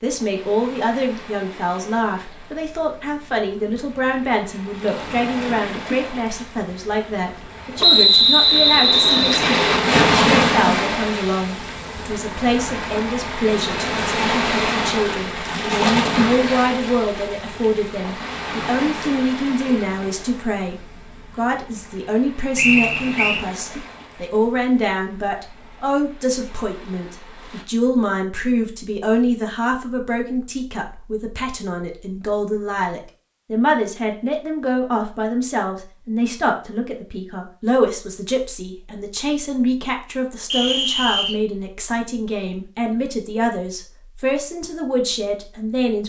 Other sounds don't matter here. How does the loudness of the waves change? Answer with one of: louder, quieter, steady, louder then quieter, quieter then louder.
louder then quieter.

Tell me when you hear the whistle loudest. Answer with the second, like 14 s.
8 s.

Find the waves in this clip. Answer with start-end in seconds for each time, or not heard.
0.0-27.6.